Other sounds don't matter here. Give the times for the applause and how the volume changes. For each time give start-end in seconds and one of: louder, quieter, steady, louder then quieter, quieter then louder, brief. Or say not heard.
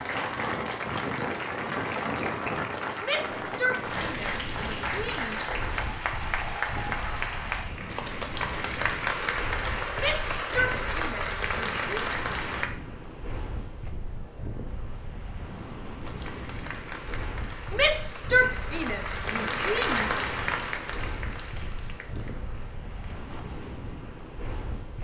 0.0-12.7 steady
16.0-23.4 louder then quieter.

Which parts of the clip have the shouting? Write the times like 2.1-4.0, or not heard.
3.0-5.4, 9.9-12.1, 17.7-20.1.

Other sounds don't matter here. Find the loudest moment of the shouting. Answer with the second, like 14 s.
18 s.